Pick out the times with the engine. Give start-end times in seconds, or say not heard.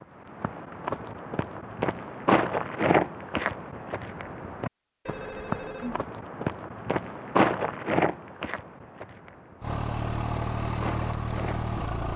9.6-12.1.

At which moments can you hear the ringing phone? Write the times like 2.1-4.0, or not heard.
5.0-6.0.